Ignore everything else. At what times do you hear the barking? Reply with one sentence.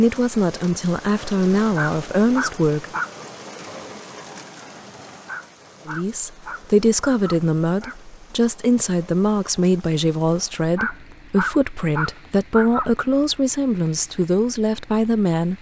You can hear the barking from 1.8 to 3.1 s, from 5.2 to 8.0 s and from 10.8 to 12.9 s.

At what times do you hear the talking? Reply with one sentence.
The talking can be heard from 0.0 to 3.0 s and from 5.8 to 15.5 s.